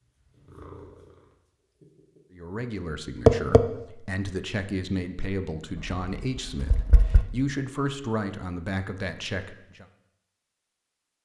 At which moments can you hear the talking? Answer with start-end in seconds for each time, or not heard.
2.3-9.8.